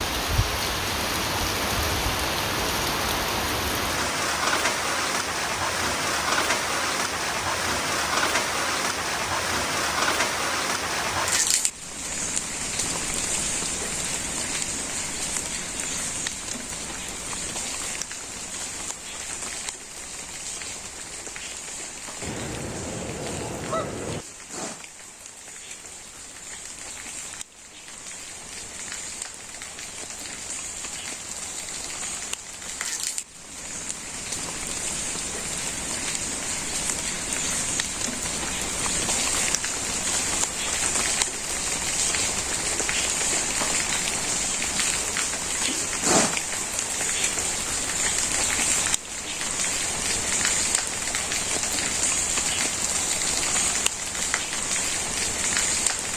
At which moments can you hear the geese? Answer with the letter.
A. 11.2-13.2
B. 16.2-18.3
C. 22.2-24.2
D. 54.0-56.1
C.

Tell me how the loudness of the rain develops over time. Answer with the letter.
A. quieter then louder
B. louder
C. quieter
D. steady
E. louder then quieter
A.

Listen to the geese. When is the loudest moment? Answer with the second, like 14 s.
24 s.